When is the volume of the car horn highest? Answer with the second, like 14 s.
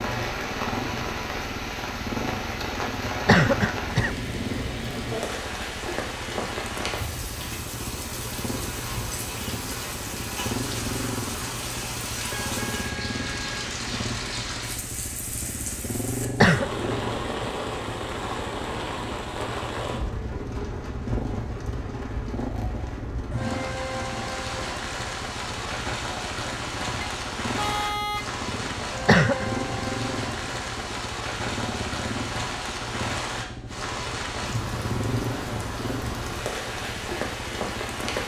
28 s.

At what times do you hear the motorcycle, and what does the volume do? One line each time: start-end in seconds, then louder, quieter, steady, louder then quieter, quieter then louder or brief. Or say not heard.
0.0-38.2 steady.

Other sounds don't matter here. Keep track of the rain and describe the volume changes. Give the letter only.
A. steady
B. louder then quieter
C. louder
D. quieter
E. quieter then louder
A.